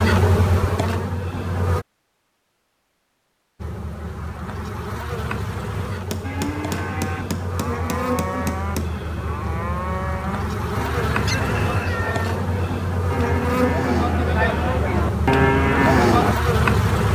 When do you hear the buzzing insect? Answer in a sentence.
You can hear the buzzing insect from 0.0 to 1.9 s and from 3.6 to 17.1 s.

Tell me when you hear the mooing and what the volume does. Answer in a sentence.
The mooing can be heard from 6.2 to 16.4 s, getting louder.